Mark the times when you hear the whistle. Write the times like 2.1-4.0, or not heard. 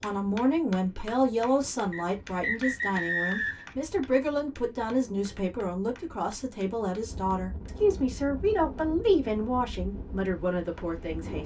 1.9-3.6.